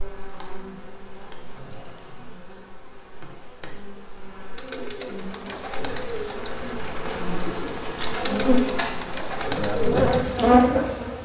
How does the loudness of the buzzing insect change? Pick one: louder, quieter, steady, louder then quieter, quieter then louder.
louder.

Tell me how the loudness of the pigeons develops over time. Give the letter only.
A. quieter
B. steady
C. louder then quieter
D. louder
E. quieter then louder
D.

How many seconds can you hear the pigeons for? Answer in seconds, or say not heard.
6 s.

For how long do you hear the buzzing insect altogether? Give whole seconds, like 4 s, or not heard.
11 s.